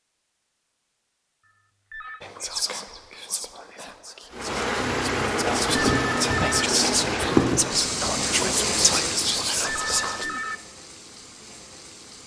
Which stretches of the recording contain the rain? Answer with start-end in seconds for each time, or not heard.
4.3-12.2.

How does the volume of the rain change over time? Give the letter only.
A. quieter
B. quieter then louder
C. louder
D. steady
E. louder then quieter
A.